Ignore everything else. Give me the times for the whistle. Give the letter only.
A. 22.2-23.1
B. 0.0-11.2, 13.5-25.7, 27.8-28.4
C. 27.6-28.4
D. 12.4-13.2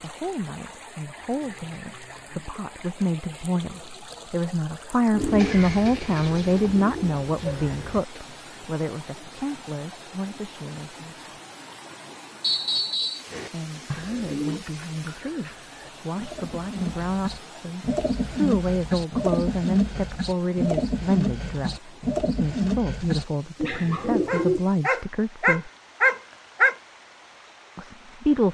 D.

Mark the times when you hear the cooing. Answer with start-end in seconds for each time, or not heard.
5.1-8.2, 13.3-24.6.